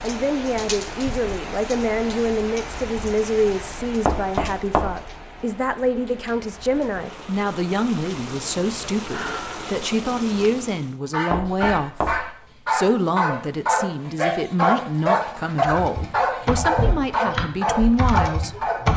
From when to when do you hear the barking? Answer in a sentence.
The barking can be heard from 11.1 to 18.8 s.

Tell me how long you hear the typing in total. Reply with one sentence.
You can hear the typing for 3 seconds altogether.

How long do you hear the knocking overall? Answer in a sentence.
The knocking can be heard for 2 seconds in total.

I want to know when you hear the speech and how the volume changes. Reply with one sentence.
You can hear the speech from 0.0 to 18.6 s, at a steady volume.